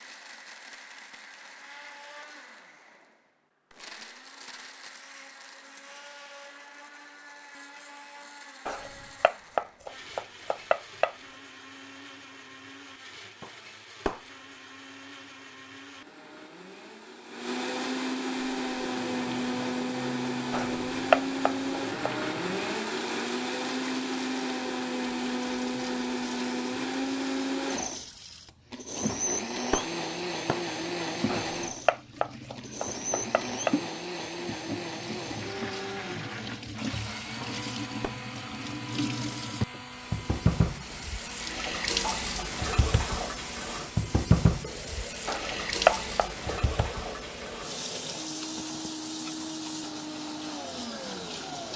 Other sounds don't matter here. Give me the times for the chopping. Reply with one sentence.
You can hear the chopping from 8.7 to 11.2 s, from 20.5 to 22.1 s, from 31.2 to 33.8 s and from 45.2 to 46.9 s.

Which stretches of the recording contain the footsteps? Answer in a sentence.
The footsteps can't be heard in this clip.